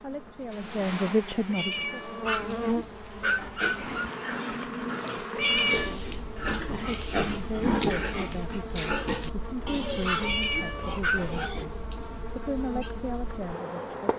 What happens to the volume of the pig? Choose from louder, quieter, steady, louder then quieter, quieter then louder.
louder then quieter.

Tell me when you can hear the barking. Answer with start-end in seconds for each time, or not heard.
2.2-4.0, 10.1-11.6.